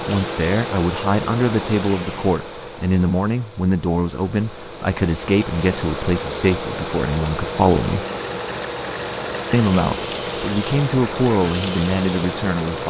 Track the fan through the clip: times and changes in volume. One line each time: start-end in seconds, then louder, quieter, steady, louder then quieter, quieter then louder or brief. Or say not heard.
0.0-12.8 quieter then louder.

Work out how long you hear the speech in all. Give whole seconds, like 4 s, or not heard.
11 s.